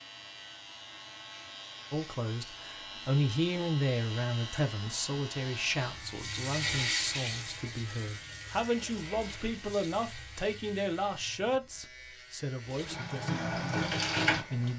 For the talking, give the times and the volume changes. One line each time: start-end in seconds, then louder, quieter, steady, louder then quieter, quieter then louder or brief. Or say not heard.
1.9-14.7 quieter.